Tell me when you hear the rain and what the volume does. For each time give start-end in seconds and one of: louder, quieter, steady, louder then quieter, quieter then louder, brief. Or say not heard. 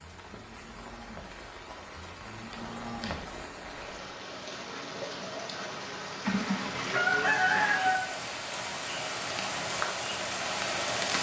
0.0-11.1 louder.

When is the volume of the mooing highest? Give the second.
3 s.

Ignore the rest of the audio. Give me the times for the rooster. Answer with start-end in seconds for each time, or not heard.
6.2-8.0.